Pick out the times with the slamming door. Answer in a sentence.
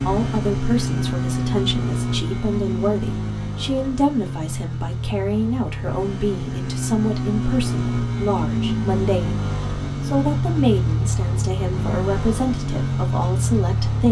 The slamming door can't be heard in this clip.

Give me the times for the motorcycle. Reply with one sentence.
You can hear the motorcycle from 0.0 to 14.0 s.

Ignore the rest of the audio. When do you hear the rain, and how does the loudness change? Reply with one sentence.
You can't hear the rain here.